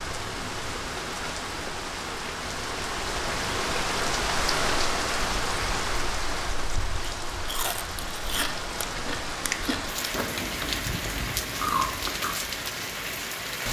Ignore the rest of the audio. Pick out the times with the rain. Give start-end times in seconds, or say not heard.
0.0-13.6.